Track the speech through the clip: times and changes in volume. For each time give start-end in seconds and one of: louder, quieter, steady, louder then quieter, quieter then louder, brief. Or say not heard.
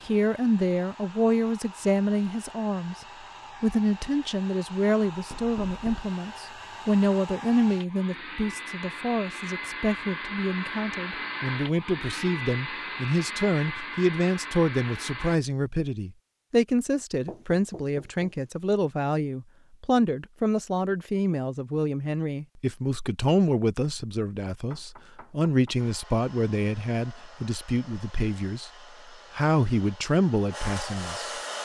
0.1-3.0 brief
3.6-28.7 steady
29.4-31.6 brief.